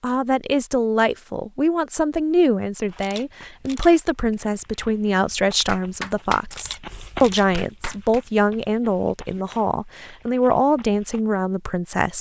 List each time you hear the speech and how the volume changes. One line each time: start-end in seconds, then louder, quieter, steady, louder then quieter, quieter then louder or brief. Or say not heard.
0.0-12.1 steady.